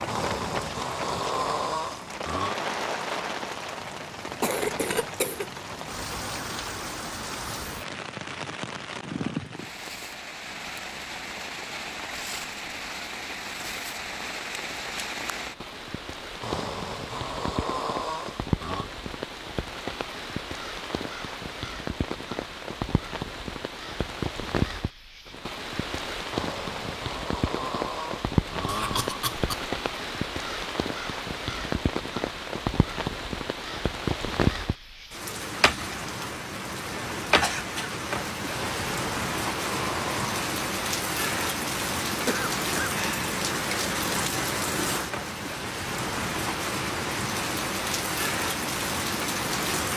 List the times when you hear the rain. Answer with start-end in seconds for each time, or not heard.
0.0-49.9.